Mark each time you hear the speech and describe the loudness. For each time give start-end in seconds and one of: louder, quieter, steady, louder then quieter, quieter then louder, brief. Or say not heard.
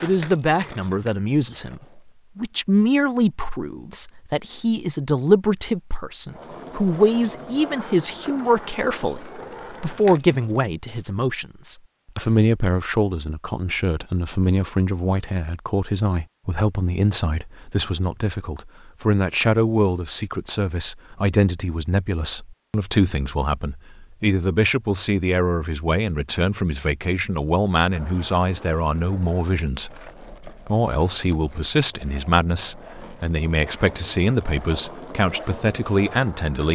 0.0-36.7 steady.